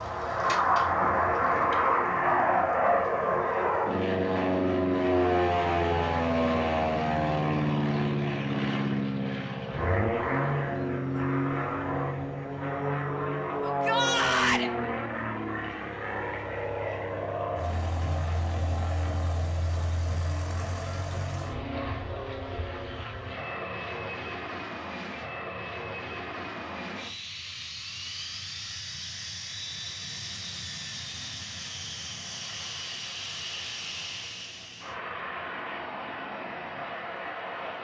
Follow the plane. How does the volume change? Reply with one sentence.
The volume of the plane goes down.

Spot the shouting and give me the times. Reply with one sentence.
The shouting can be heard from 13.6 to 14.7 s.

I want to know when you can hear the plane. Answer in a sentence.
You can hear the plane from 0.0 to 37.7 s.